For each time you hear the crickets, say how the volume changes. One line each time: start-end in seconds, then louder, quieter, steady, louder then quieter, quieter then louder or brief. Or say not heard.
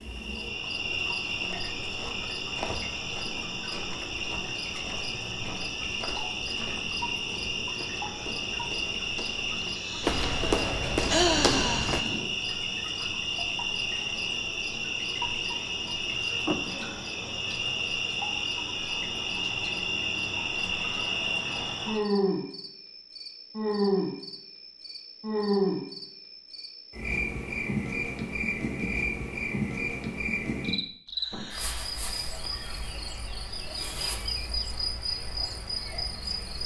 0.0-36.6 steady.